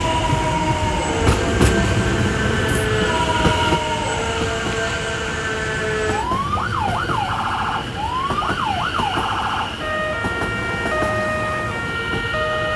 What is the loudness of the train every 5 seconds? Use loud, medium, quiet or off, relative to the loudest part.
loud, medium, medium.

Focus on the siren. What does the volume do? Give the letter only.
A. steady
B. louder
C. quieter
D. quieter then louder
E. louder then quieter
A.